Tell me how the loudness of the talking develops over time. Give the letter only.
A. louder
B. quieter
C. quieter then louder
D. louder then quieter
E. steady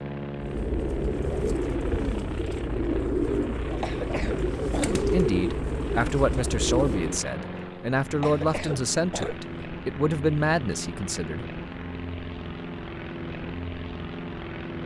E.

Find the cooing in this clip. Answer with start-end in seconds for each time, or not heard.
0.3-7.2.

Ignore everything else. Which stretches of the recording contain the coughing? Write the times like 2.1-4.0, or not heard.
3.8-5.0, 8.2-9.4.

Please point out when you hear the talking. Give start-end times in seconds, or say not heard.
5.0-11.4.